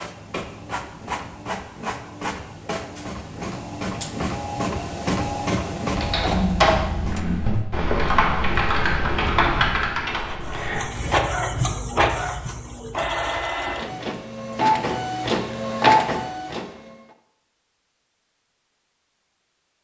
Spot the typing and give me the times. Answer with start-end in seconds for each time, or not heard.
5.9-11.2.